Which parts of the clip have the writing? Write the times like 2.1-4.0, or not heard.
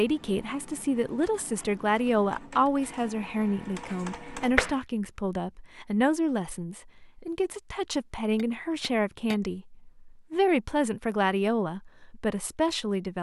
not heard.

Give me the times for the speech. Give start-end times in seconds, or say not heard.
0.0-13.1.